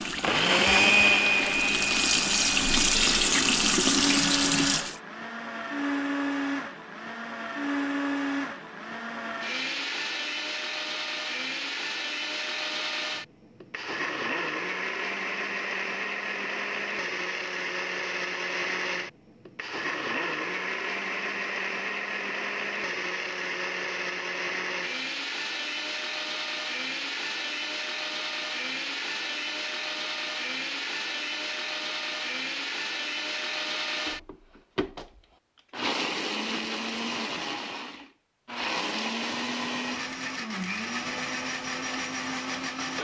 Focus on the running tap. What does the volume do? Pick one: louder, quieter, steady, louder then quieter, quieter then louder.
louder.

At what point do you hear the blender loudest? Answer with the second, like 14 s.
1 s.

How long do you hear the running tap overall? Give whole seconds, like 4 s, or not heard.
5 s.